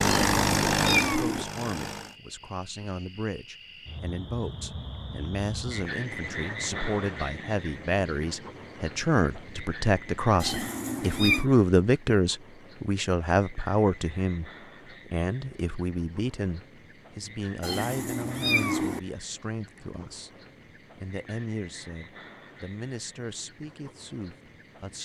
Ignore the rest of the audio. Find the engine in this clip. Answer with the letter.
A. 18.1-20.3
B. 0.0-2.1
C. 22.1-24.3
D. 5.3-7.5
B.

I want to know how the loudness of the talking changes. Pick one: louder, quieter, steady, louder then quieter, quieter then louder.
louder then quieter.